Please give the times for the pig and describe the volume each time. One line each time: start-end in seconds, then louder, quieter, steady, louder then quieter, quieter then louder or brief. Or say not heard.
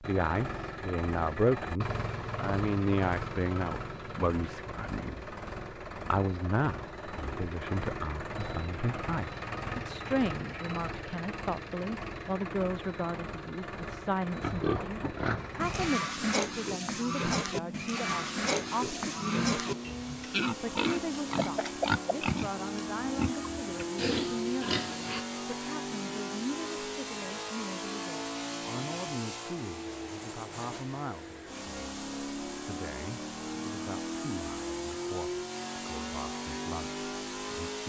14.4-25.2 steady.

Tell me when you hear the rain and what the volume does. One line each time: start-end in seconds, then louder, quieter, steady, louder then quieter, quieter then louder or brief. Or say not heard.
not heard.